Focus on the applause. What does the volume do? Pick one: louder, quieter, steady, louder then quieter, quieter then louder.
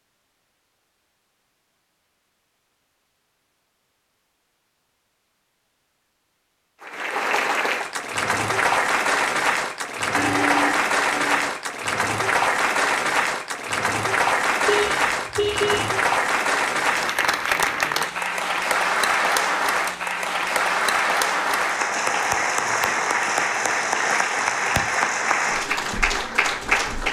steady.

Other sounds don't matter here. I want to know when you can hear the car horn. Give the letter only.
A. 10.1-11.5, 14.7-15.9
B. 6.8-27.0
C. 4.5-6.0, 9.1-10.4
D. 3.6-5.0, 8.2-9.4
A.